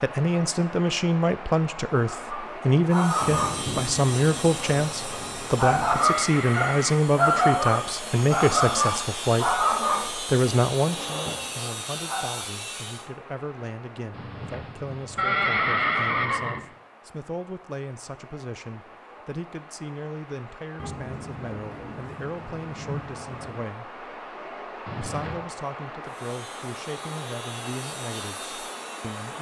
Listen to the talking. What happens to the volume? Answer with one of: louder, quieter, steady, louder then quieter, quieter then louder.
quieter.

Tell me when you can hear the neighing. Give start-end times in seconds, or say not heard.
4.9-7.0, 14.1-16.6, 24.9-25.4.